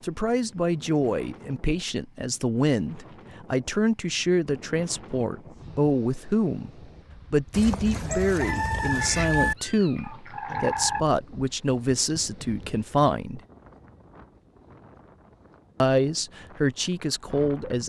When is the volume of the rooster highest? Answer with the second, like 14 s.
9 s.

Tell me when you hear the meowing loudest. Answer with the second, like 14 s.
11 s.